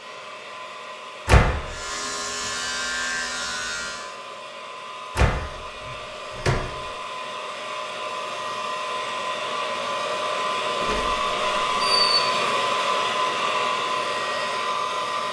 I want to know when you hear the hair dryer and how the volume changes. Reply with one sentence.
You can hear the hair dryer from 0.0 to 15.2 s, getting louder.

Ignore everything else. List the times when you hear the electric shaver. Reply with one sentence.
You can hear the electric shaver from 1.6 to 4.2 s.